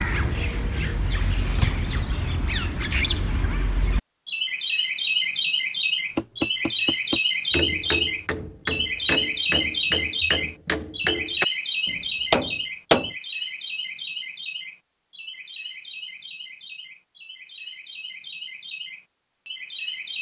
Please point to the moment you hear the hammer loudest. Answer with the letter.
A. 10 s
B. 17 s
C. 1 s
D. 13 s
D.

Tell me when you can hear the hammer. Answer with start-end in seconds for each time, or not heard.
6.2-13.1.